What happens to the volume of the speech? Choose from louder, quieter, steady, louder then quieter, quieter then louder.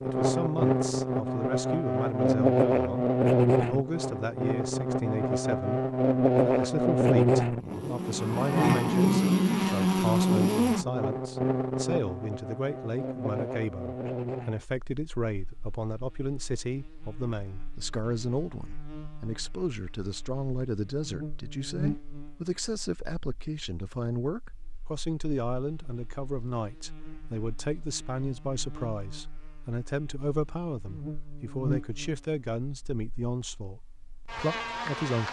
steady.